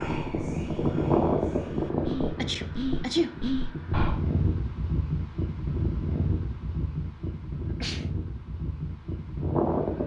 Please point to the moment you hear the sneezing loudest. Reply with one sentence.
The loudest moment of the sneezing is at 3 seconds.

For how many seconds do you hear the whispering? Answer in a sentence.
You can hear the whispering for 4 seconds altogether.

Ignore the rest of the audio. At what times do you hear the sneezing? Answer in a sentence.
The sneezing can be heard from 2.4 to 3.4 s and from 7.7 to 8.1 s.